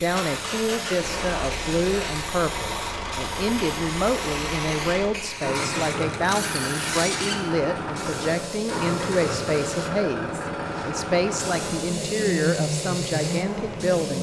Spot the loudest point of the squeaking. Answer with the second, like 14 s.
7 s.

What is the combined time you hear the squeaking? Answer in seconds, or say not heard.
2 s.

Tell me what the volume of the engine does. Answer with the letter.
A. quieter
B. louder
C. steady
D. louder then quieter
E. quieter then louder
C.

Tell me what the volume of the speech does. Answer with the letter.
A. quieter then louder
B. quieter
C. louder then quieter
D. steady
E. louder
D.